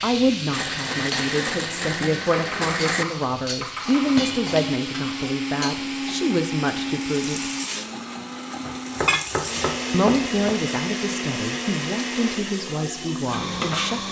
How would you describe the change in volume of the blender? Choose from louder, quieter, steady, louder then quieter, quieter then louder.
steady.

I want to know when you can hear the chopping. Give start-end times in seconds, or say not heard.
2.2-4.2, 8.7-10.6.